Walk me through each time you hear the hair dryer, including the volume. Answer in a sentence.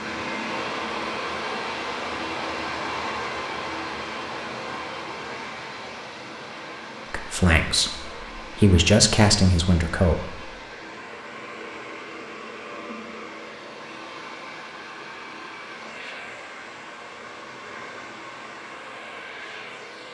You can hear the hair dryer from 0.0 to 20.1 s, getting quieter.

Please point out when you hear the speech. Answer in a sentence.
You can hear the speech from 7.1 to 10.5 s.